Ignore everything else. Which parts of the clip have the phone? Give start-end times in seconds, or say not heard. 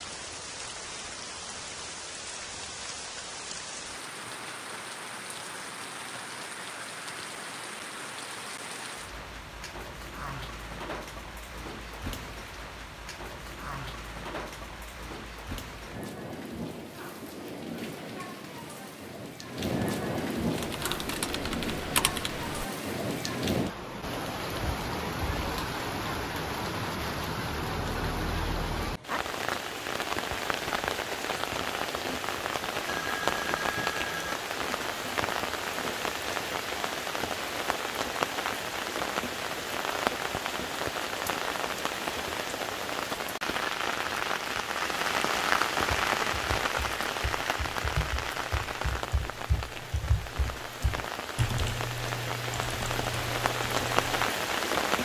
32.9-34.4.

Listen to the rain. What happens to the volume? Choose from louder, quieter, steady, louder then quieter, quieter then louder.
louder.